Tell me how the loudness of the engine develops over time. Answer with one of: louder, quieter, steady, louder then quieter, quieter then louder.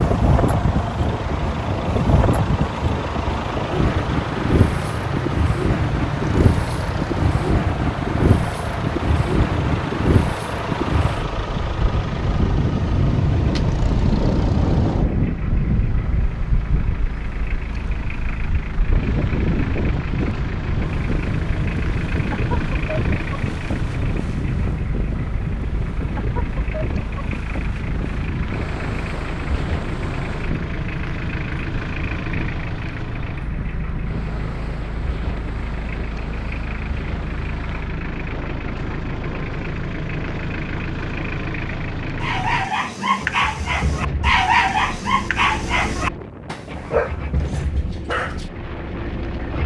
steady.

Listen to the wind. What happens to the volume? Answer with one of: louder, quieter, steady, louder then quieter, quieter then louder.
quieter.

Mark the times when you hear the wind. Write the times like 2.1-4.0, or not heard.
0.0-49.6.